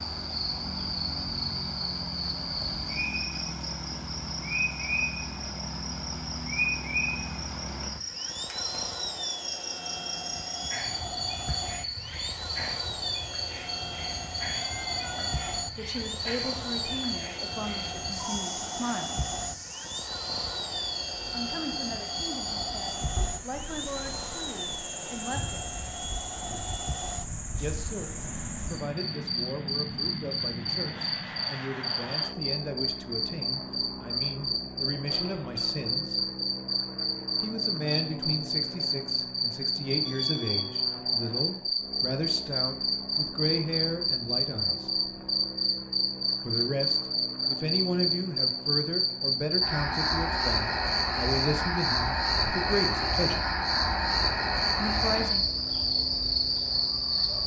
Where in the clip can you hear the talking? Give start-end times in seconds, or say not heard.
15.1-19.2, 21.3-25.8, 27.6-36.3, 37.4-44.9, 46.5-53.5, 54.8-55.5.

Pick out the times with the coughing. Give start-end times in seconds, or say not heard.
not heard.